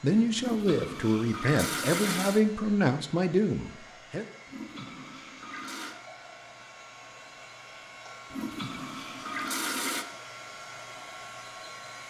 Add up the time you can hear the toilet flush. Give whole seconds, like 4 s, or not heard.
5 s.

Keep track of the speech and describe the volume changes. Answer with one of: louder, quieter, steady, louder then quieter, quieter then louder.
steady.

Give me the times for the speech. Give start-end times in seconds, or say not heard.
0.0-4.2.